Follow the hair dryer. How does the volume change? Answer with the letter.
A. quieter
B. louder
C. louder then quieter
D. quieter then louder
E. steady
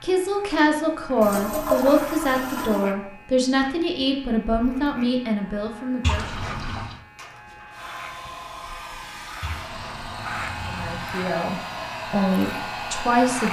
B.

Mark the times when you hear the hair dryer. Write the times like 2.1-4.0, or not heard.
7.2-13.4.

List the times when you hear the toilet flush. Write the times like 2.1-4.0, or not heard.
1.2-2.9, 6.0-7.0, 9.4-11.1.